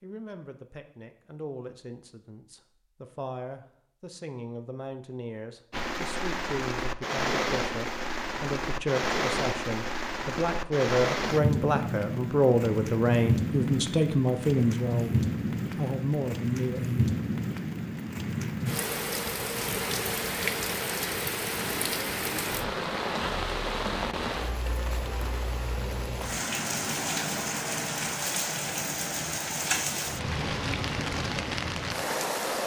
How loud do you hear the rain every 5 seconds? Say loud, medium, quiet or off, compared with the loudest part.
off, loud, loud, loud, loud, loud, loud.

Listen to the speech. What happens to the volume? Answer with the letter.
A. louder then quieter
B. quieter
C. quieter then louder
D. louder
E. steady
D.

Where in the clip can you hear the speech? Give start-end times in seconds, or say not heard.
0.0-17.0.